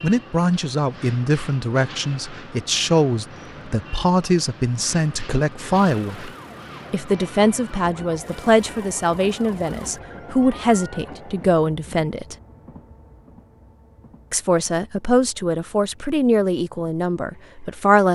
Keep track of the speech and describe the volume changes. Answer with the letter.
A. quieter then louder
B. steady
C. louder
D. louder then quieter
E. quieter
B.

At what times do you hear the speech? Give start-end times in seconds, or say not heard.
0.0-6.3, 6.9-12.3, 14.3-18.0.